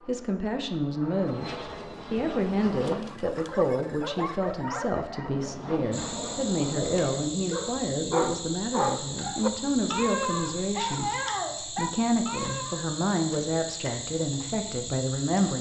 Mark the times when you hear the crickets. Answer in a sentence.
The crickets can be heard from 5.9 to 15.5 s.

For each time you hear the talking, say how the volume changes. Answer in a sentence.
The talking can be heard from 0.1 to 15.5 s, at a steady volume.